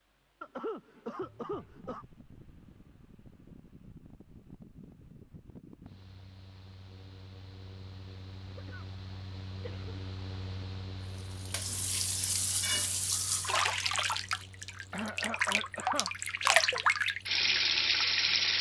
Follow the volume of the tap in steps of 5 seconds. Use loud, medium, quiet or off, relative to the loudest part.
off, off, medium, loud.